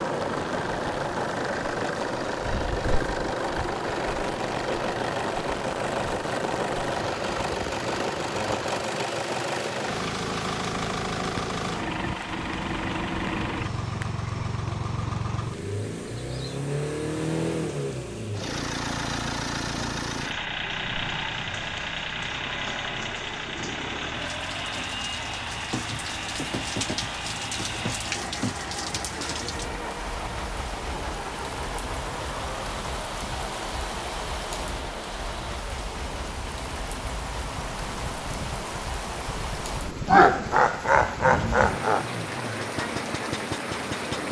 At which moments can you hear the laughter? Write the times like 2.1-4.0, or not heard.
40.0-42.0.